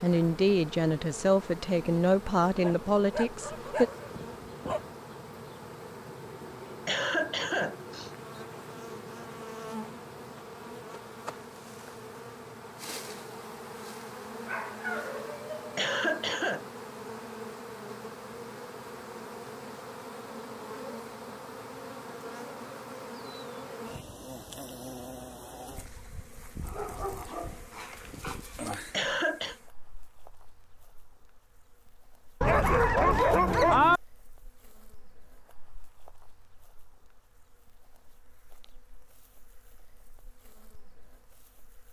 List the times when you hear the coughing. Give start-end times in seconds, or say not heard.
6.8-8.1, 15.8-16.6, 28.9-29.6.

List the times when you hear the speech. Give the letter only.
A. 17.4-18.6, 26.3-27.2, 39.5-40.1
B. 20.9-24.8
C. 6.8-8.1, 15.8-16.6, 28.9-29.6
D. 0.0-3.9
D.